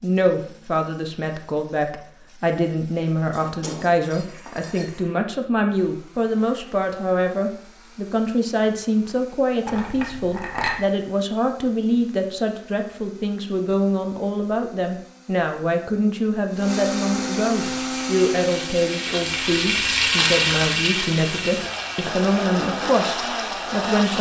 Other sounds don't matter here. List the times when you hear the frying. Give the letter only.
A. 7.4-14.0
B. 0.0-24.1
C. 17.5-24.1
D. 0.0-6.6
C.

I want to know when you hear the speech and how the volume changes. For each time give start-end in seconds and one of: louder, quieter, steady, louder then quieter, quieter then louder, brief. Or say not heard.
0.0-24.1 steady.